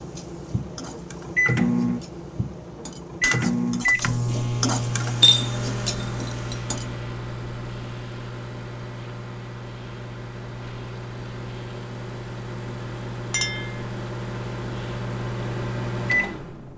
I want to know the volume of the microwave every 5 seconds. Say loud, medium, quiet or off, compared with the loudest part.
loud, medium, medium, loud.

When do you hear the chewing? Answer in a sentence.
The chewing can't be heard in this clip.